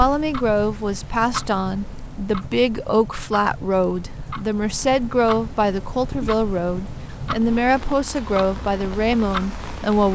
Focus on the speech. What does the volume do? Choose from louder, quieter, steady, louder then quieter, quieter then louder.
steady.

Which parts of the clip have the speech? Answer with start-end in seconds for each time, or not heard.
0.0-10.1.